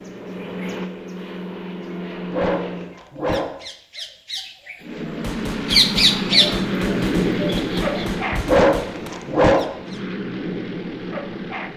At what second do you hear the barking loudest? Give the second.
9 s.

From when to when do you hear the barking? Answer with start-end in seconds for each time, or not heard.
2.3-3.6, 8.4-9.8.